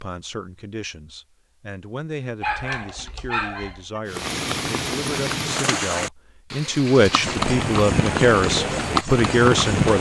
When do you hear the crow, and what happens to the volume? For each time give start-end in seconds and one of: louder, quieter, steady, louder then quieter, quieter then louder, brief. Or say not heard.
not heard.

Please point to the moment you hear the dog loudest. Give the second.
3 s.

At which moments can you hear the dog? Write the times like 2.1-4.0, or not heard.
2.4-4.0.